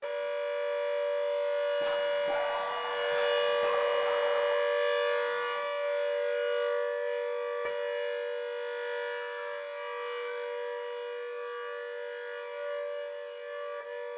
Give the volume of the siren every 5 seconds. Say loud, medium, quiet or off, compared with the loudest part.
loud, loud, medium.